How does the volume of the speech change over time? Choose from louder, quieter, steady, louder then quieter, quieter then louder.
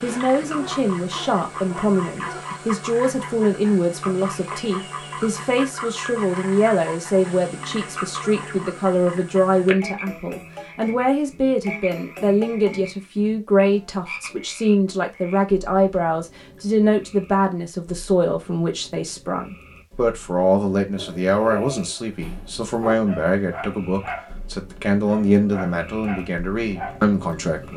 steady.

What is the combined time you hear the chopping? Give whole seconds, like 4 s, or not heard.
not heard.